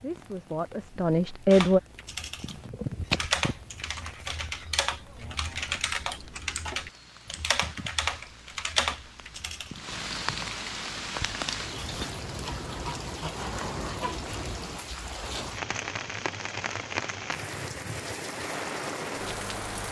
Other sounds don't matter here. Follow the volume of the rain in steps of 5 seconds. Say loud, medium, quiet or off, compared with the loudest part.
quiet, quiet, loud, loud.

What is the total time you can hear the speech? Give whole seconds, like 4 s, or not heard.
2 s.